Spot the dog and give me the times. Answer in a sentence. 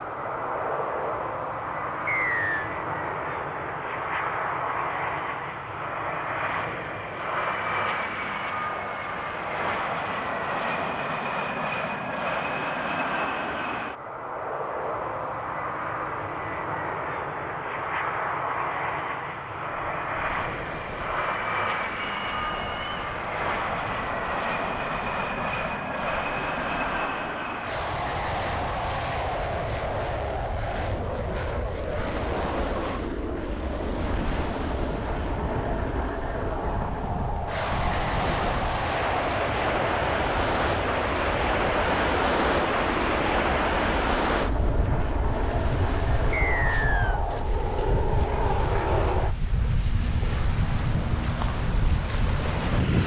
The dog can't be heard in this clip.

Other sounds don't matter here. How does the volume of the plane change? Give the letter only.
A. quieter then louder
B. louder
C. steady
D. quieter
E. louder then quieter
C.